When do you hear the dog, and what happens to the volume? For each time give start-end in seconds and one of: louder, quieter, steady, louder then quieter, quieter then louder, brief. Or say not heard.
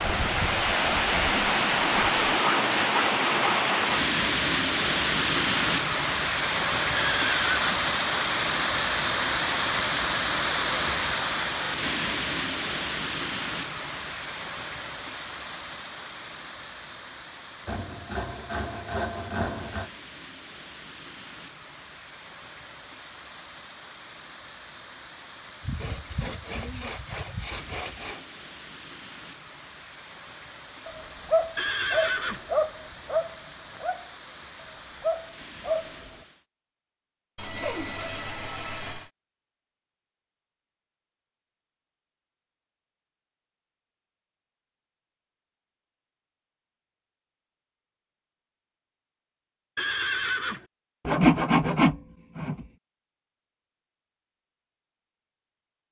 30.9-36.0 quieter then louder.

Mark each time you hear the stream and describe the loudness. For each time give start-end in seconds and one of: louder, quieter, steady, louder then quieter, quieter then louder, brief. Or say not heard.
0.0-36.5 quieter.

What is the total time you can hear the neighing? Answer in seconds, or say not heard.
3 s.